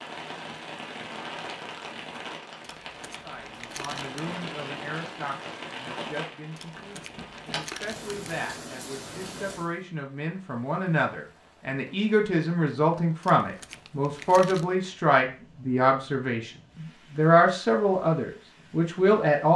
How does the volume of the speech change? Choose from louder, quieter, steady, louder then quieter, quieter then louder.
louder.